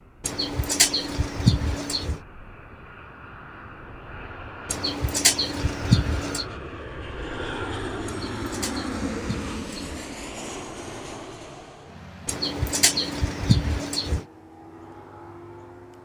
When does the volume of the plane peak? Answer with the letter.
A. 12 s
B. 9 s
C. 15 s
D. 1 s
B.